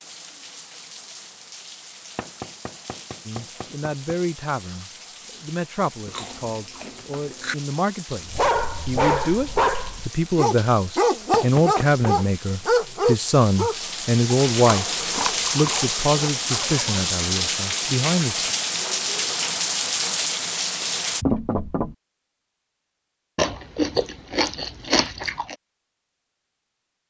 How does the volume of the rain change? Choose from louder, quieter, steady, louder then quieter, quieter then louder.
louder.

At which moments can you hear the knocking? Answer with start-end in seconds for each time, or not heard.
2.1-4.2, 11.3-12.1, 21.2-21.9.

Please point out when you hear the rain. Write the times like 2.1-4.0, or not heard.
0.0-21.2.